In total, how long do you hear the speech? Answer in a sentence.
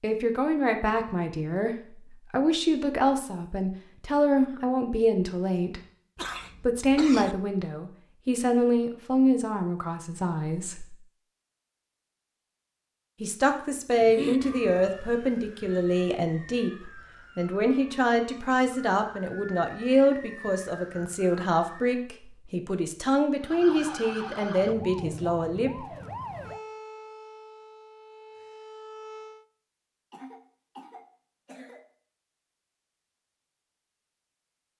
You can hear the speech for 23 seconds altogether.